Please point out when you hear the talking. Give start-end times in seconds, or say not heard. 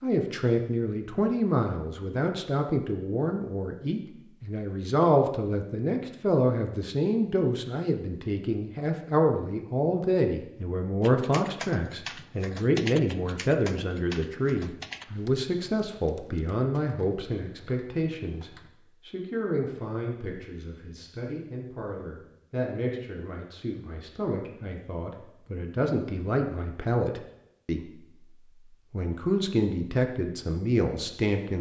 0.0-27.9, 28.9-31.5.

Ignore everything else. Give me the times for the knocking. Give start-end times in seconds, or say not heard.
not heard.